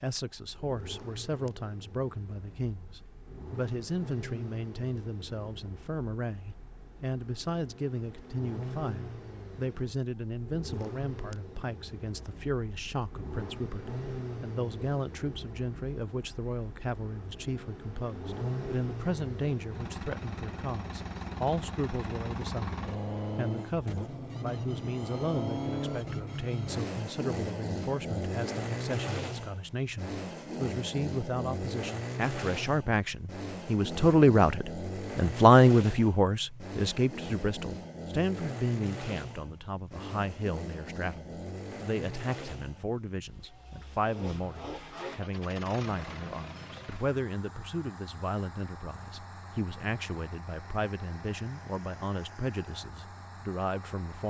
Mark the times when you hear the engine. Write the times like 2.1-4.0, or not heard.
0.1-54.2.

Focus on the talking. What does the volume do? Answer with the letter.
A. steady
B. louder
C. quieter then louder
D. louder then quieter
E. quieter
D.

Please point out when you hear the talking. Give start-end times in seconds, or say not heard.
0.0-54.2.